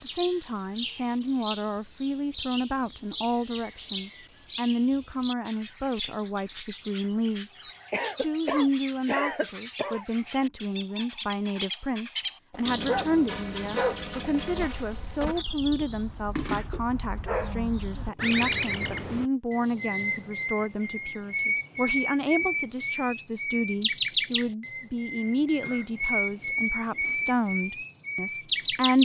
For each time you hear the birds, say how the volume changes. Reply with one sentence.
You can hear the birds from 0.0 to 29.0 s, getting louder.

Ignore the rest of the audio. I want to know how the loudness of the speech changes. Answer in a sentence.
The volume of the speech stays about the same.